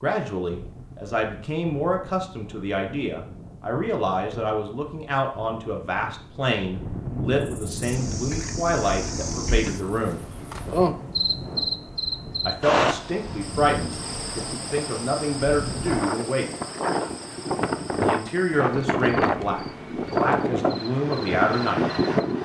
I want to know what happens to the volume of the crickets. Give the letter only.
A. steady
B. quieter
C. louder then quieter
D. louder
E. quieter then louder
C.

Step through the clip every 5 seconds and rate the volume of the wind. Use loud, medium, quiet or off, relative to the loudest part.
quiet, medium, quiet, loud, loud.